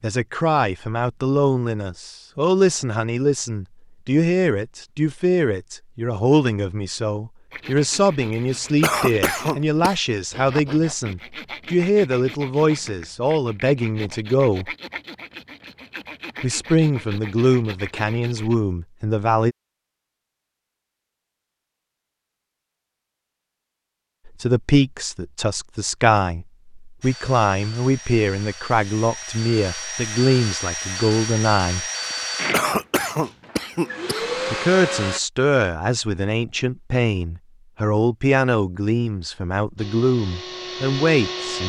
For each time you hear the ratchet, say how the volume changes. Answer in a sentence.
You can't hear the ratchet here.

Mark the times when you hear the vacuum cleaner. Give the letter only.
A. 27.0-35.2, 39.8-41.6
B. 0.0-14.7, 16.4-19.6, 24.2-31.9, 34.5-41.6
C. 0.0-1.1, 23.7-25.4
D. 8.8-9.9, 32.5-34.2
A.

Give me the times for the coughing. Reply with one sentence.
You can hear the coughing from 8.8 to 9.9 s and from 32.5 to 34.2 s.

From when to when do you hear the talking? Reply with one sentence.
The talking can be heard from 0.0 to 14.7 s, from 16.4 to 19.6 s, from 24.2 to 31.9 s and from 34.5 to 41.6 s.